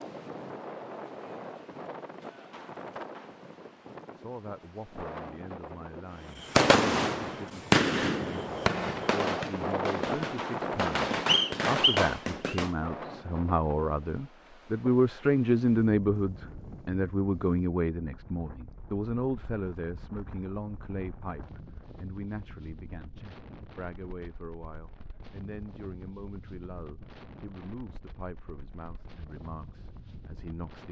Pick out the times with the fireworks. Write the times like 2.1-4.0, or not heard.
6.3-12.7.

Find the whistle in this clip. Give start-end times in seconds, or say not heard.
11.2-12.6.